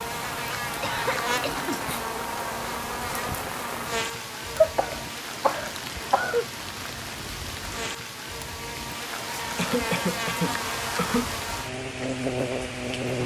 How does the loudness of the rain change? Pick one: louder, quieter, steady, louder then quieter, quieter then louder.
steady.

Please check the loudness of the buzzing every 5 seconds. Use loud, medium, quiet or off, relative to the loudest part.
loud, medium, loud.